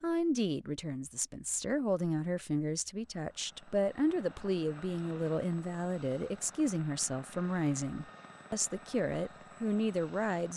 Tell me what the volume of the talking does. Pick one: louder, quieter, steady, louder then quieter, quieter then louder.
steady.